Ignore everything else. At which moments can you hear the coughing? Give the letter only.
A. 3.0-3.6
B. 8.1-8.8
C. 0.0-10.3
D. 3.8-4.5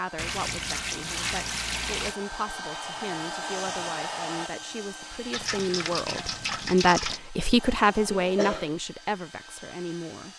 B.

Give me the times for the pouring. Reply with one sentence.
The pouring can be heard from 0.1 to 2.1 s and from 5.3 to 7.2 s.